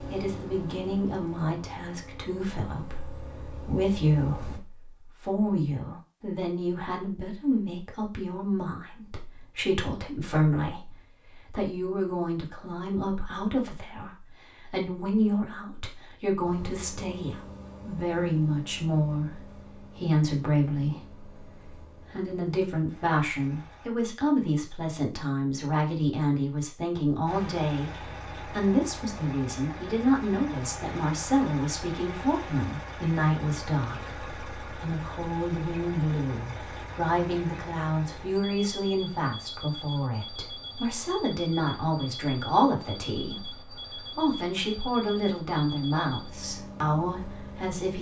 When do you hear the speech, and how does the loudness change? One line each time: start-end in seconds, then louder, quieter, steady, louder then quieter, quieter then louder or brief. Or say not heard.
0.0-47.9 steady.